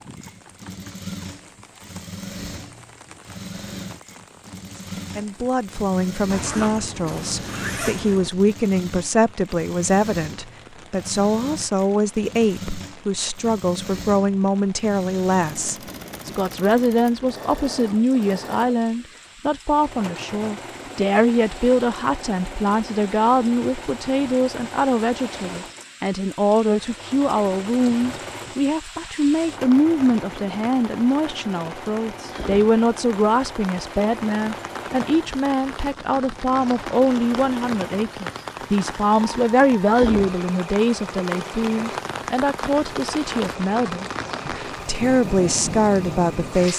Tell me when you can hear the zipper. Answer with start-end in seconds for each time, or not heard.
6.3-8.3.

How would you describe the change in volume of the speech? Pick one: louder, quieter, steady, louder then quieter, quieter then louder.
steady.